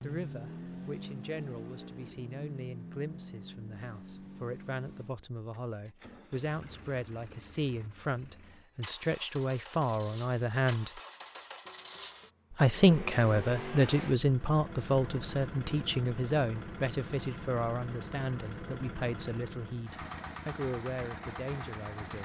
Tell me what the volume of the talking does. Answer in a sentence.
The volume of the talking goes up, then down.